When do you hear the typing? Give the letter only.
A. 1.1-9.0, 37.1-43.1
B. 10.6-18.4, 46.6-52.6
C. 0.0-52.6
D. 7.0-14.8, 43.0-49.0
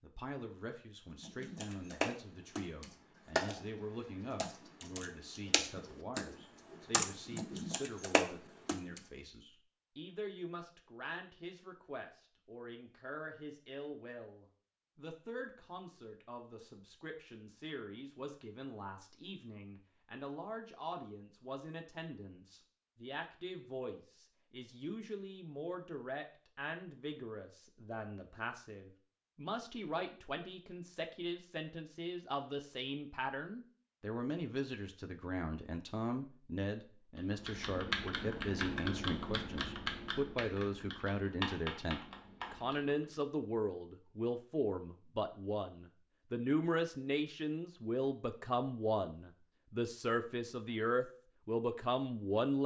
A.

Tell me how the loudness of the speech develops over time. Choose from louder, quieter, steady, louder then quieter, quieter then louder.
louder.